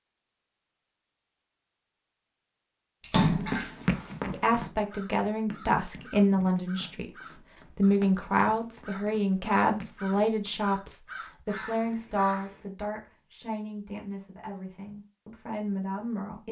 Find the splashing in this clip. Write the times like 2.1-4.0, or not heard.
3.0-4.0.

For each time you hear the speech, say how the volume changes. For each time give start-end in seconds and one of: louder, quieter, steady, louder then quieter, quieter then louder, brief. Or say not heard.
4.3-16.4 quieter.